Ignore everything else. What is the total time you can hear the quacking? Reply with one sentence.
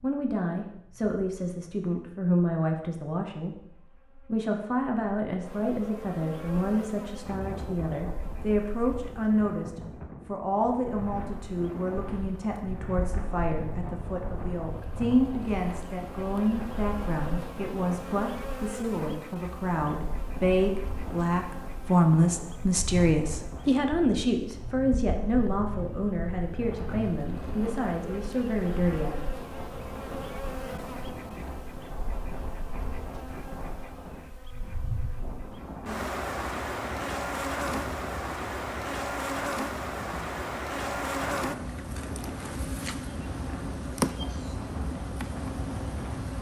The quacking can't be heard in this clip.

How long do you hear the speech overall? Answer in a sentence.
You can hear the speech for 29 seconds altogether.